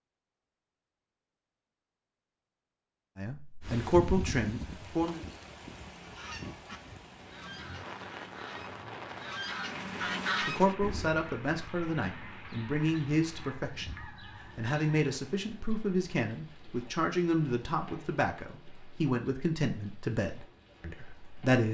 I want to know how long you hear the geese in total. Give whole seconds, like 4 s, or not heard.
9 s.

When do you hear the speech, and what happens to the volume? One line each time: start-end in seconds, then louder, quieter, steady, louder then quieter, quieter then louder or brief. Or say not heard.
3.2-5.2 brief
10.4-21.6 steady.